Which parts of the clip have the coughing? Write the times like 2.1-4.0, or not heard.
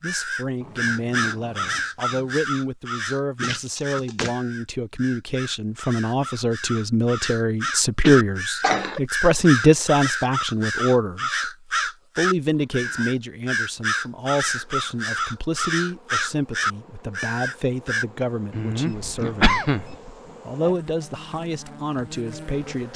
3.4-4.3, 8.0-9.0, 18.5-20.1.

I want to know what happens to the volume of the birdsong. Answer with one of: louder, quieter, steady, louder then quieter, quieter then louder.
quieter then louder.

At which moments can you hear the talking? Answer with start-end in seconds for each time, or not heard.
0.0-11.5, 12.2-19.6, 20.4-22.9.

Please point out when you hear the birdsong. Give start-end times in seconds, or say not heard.
0.0-18.1.